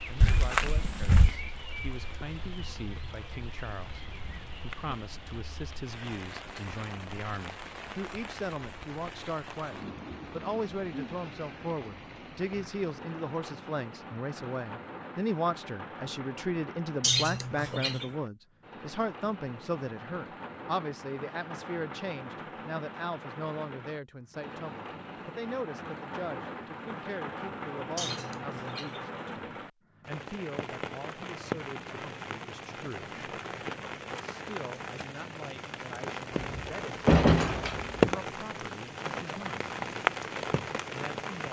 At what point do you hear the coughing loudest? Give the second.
17 s.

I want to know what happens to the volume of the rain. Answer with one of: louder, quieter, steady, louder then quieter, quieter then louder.
louder.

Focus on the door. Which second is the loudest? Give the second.
37 s.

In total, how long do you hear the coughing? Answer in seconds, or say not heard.
2 s.